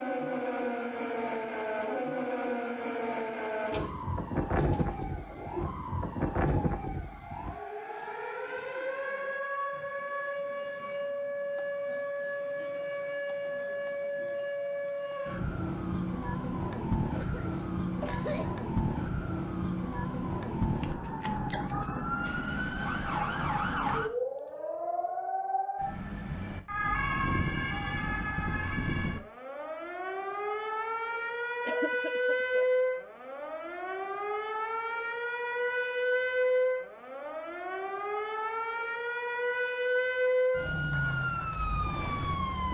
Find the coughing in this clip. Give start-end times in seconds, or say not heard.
17.1-18.5, 31.6-32.6.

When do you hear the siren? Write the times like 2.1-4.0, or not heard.
0.0-42.6.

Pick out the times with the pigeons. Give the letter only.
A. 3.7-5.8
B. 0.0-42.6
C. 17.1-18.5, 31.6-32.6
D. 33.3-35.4
A.